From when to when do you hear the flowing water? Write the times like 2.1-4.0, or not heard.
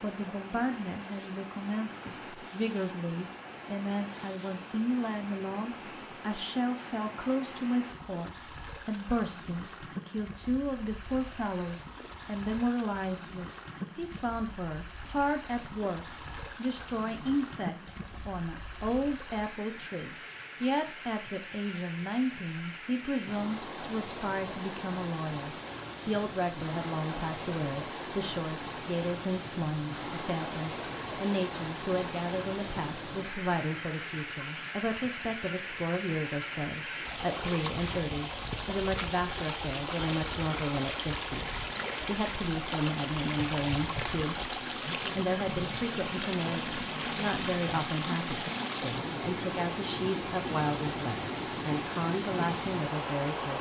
0.0-53.5.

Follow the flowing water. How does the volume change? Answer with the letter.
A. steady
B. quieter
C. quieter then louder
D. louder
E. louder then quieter
D.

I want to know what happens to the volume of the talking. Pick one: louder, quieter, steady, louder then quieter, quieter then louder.
steady.